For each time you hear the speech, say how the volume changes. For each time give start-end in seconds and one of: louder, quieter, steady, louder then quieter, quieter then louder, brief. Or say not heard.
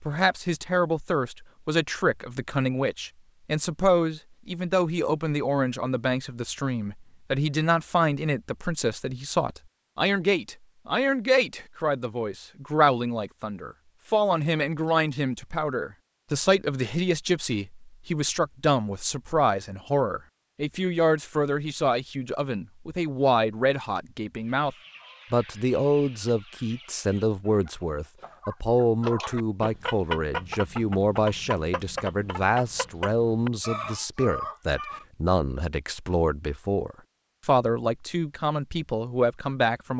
0.0-39.9 steady.